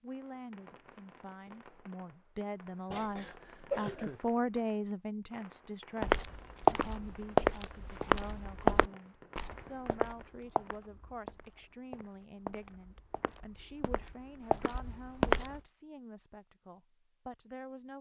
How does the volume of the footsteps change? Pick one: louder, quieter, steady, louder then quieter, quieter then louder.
quieter then louder.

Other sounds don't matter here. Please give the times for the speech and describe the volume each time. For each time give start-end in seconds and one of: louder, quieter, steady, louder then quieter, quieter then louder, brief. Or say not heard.
0.0-17.9 louder then quieter.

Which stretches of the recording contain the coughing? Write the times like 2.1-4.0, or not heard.
2.9-4.2.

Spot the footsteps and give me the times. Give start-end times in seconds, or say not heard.
6.0-15.6.